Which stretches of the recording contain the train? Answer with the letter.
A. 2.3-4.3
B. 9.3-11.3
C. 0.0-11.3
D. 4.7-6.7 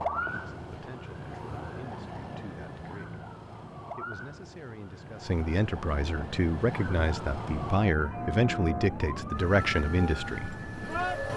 B.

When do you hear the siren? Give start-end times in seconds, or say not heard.
0.0-11.3.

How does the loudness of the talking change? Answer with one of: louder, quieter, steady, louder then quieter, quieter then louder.
louder.